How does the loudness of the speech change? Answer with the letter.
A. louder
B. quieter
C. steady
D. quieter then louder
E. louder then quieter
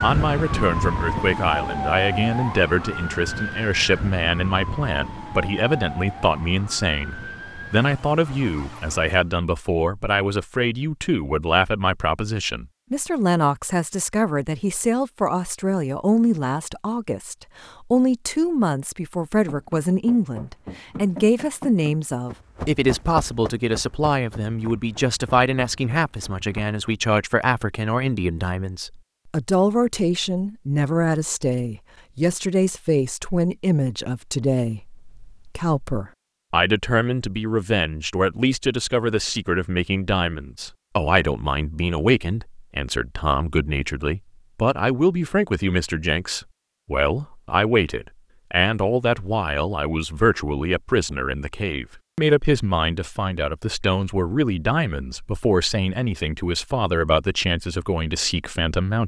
C.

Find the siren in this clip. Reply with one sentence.
The siren can be heard from 0.0 to 9.3 s.